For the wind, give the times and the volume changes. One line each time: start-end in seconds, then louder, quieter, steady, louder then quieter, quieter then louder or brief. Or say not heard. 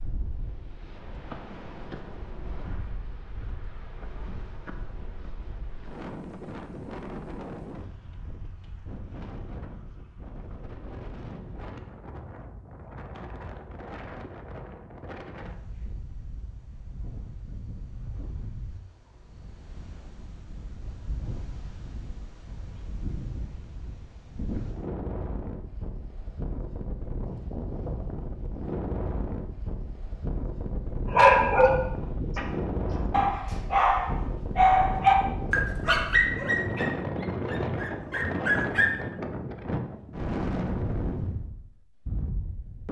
0.0-42.8 louder.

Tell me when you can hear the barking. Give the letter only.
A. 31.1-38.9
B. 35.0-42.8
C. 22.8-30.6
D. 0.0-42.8
A.